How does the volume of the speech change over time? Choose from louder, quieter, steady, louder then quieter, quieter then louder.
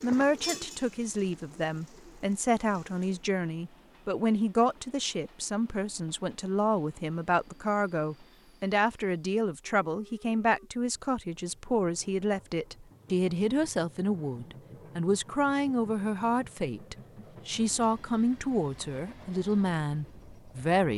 steady.